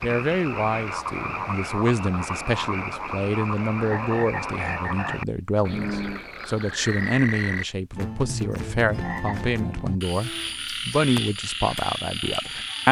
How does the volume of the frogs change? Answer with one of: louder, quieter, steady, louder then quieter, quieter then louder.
steady.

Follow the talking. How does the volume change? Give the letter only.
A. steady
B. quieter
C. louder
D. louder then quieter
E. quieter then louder
A.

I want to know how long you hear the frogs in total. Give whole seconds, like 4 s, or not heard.
13 s.